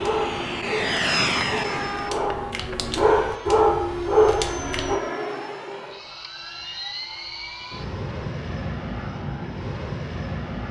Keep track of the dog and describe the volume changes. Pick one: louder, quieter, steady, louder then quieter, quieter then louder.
louder.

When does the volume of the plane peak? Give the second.
1 s.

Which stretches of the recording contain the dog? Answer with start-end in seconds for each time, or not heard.
0.0-5.0.